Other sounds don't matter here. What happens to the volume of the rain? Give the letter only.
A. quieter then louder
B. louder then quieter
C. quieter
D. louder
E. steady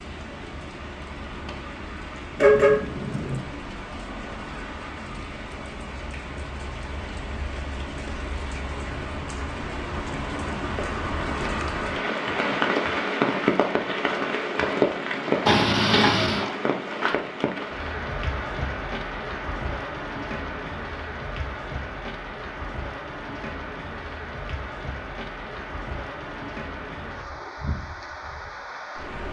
B.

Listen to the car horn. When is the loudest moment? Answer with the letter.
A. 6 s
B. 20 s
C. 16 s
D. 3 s
D.